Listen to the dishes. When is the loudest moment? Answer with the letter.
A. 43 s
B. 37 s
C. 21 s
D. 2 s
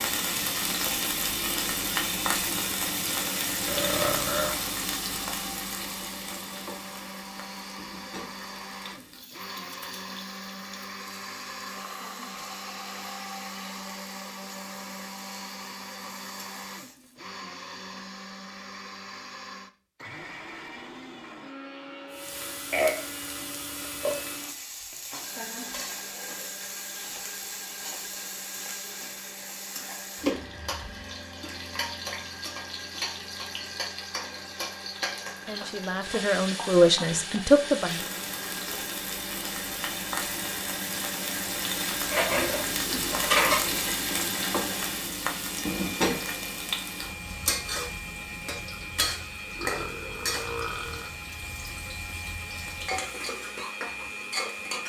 A.